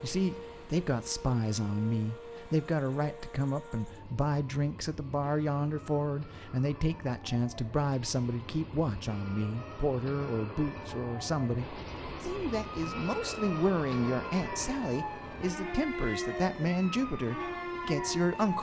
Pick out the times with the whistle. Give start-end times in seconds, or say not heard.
not heard.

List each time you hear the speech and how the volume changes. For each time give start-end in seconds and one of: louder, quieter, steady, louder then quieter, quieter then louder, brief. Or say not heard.
0.0-18.5 steady.